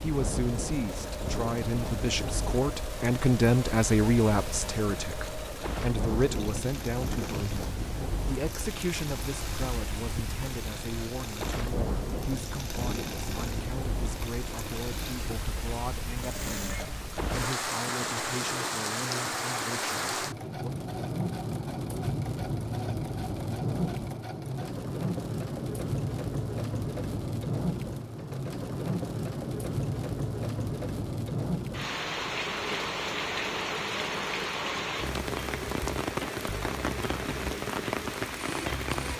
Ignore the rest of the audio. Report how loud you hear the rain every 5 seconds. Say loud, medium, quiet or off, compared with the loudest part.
medium, medium, medium, loud, loud, loud, loud, loud.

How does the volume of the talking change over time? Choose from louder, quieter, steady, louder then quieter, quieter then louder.
quieter.